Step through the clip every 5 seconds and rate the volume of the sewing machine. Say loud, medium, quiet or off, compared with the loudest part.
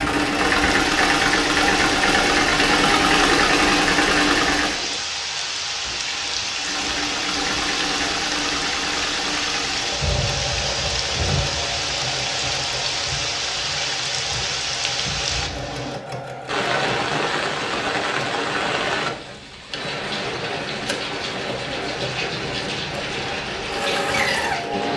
loud, medium, quiet, quiet, medium.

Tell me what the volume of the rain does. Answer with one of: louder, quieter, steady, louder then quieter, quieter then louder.
steady.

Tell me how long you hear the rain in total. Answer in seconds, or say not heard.
25 s.